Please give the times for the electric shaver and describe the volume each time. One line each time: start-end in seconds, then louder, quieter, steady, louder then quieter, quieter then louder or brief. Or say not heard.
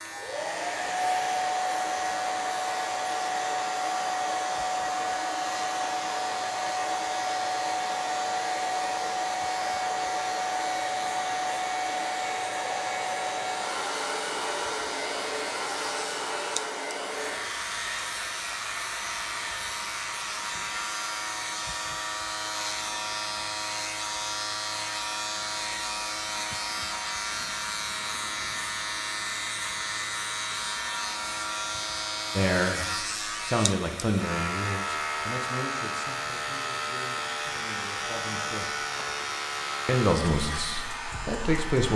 0.0-41.9 louder.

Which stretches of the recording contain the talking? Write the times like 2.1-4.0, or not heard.
32.4-38.8, 39.9-41.9.